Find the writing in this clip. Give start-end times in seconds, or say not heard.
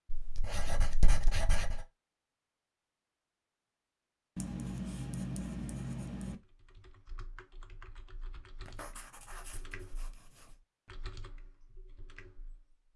0.1-1.9, 4.3-6.3, 8.7-10.6.